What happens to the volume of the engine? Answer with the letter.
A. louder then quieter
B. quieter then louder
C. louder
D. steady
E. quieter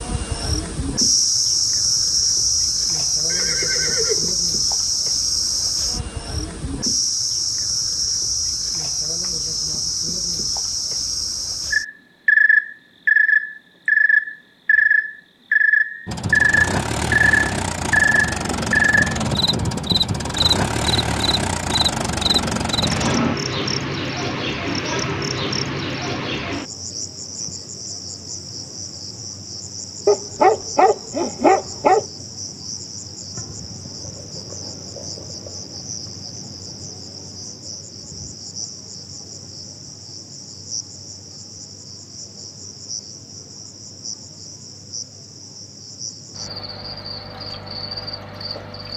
D.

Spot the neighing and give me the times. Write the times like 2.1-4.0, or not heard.
3.2-4.3.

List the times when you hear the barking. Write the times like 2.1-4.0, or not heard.
30.1-32.0.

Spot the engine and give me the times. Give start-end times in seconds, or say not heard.
16.1-23.4.